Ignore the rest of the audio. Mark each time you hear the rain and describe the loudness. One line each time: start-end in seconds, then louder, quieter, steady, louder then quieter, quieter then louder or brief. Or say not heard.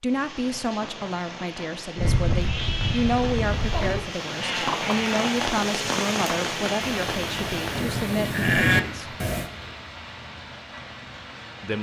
0.0-11.7 louder then quieter.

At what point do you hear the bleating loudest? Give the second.
9 s.